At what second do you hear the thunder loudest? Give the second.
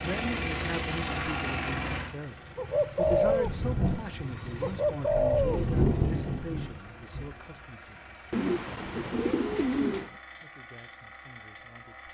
6 s.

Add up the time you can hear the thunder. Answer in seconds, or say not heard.
4 s.